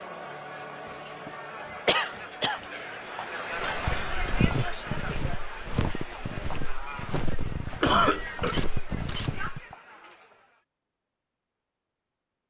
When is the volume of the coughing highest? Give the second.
8 s.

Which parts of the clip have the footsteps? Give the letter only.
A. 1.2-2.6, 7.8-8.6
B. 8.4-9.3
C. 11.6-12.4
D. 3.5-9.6
D.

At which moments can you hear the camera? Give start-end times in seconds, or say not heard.
8.4-9.3.